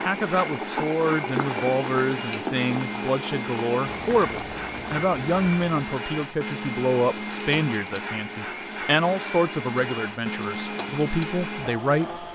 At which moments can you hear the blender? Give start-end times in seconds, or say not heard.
0.0-12.3.